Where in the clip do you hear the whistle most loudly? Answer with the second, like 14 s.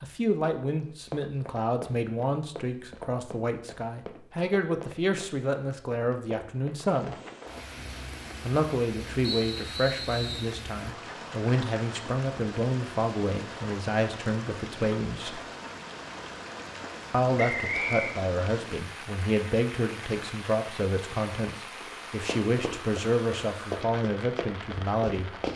18 s.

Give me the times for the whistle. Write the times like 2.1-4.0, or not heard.
9.2-10.6, 17.4-18.1.